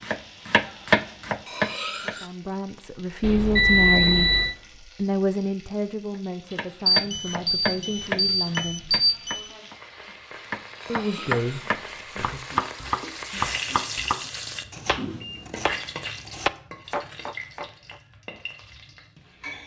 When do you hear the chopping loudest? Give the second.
1 s.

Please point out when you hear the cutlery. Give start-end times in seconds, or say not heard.
1.4-2.4, 10.8-11.7.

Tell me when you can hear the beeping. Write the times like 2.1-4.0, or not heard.
3.2-4.5, 6.8-9.5, 14.8-15.9.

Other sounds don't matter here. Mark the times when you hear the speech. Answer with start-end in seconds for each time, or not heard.
2.0-8.9, 10.8-12.6.